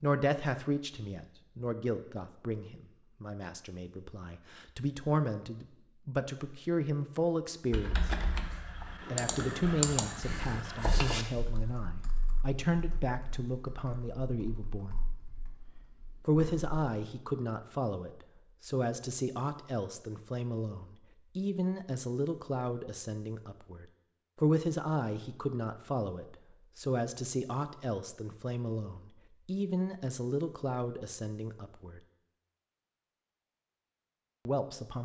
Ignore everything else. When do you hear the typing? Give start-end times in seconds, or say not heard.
7.7-16.7.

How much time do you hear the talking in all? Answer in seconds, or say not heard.
30 s.